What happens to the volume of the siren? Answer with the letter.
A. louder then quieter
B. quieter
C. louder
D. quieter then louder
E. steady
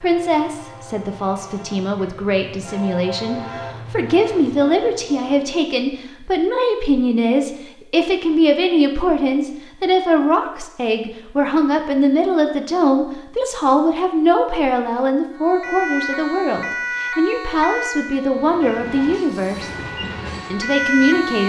D.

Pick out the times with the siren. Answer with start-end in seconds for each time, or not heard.
15.3-21.4.